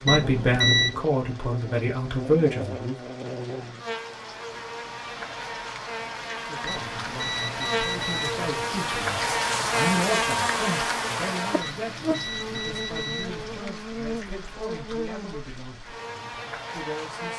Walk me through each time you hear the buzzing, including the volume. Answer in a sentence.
The buzzing can be heard from 0.0 to 17.3 s, getting louder then quieter.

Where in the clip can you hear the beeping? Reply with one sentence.
You can hear the beeping from 0.1 to 0.9 s, from 6.7 to 8.5 s and from 11.6 to 13.6 s.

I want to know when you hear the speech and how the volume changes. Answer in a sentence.
The speech can be heard briefly from 0.0 to 3.0 s; and from 6.3 to 17.3 s, getting louder then quieter.